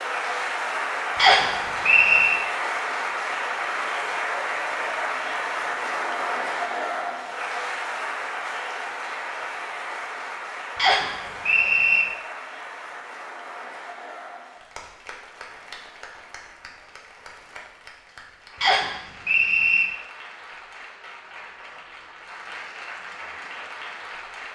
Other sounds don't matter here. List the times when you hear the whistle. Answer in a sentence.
The whistle can be heard from 1.1 to 2.4 s, from 10.8 to 12.1 s and from 18.6 to 19.9 s.